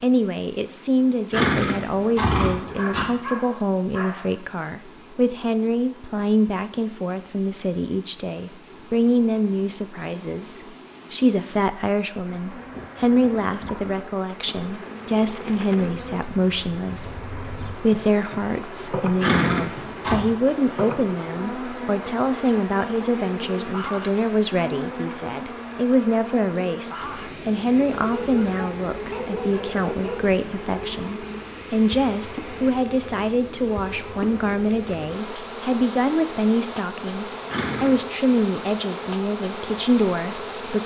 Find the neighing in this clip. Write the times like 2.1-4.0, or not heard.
1.3-3.0, 19.2-20.2, 37.5-38.0.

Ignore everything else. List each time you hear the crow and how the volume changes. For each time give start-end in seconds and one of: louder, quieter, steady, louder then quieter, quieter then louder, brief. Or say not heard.
not heard.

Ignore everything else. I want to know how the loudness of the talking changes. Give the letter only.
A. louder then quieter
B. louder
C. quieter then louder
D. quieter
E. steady
E.